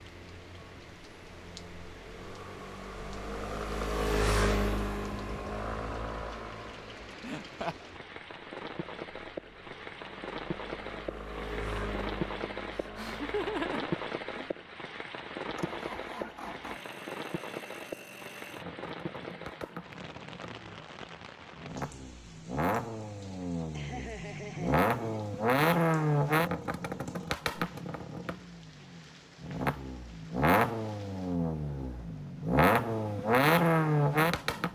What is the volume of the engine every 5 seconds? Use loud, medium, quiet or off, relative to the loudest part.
medium, quiet, quiet, quiet, medium, loud, loud.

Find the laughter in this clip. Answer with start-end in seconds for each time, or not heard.
7.2-7.9, 12.7-14.5, 23.7-25.3.